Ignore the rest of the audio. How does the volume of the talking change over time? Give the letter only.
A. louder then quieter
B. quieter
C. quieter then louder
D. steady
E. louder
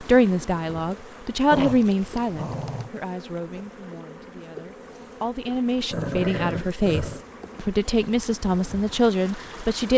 C.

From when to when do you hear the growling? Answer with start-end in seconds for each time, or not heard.
1.5-2.9, 5.9-7.2.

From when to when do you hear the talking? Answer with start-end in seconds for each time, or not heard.
0.0-9.9.